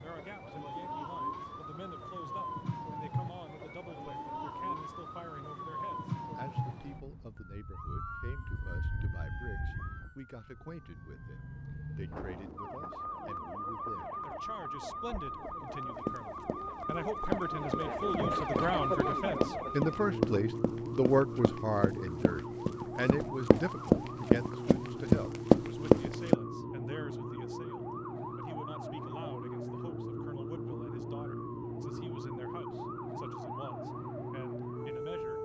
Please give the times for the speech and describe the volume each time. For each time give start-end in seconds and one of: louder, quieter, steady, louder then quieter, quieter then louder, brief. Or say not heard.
0.0-35.4 louder then quieter.